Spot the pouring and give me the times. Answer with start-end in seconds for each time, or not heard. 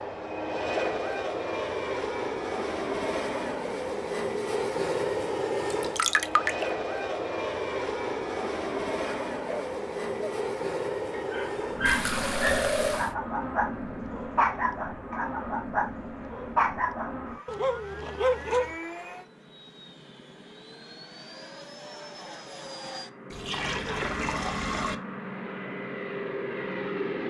5.7-6.7, 11.8-13.2, 23.3-24.9.